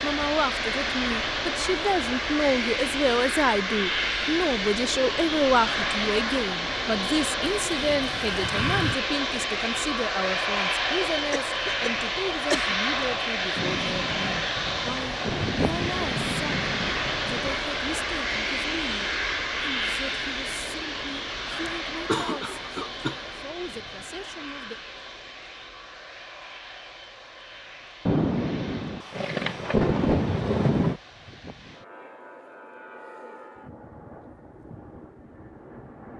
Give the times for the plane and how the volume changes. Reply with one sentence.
You can hear the plane from 0.0 to 36.1 s, getting quieter.